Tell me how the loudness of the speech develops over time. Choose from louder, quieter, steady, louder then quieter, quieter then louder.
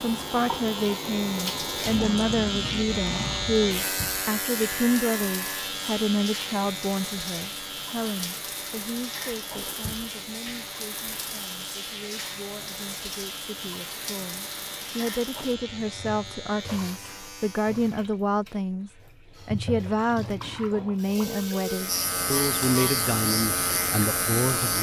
quieter then louder.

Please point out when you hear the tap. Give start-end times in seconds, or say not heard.
0.0-24.7.